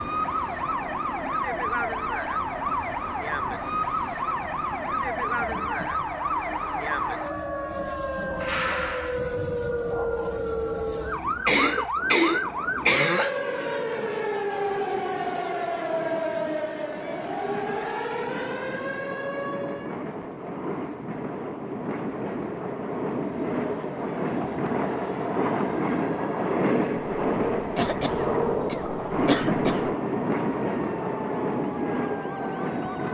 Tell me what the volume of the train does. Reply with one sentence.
The loudness of the train goes up.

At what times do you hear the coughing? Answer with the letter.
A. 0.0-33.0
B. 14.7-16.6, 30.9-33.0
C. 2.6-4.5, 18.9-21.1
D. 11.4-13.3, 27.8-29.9
D.